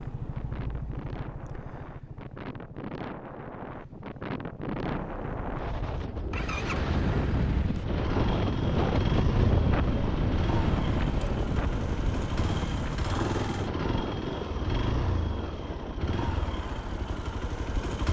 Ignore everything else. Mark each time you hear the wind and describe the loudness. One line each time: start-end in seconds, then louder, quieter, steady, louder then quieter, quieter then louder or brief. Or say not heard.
0.0-18.0 louder then quieter.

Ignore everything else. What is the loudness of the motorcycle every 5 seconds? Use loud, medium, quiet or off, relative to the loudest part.
medium, loud, loud, loud.